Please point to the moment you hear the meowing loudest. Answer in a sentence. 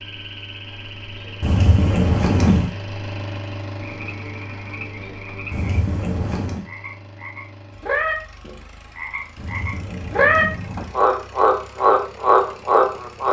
The volume of the meowing peaks at 2 seconds.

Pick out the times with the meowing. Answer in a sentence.
The meowing can be heard from 1.4 to 2.7 s, from 5.5 to 6.7 s and from 9.3 to 11.0 s.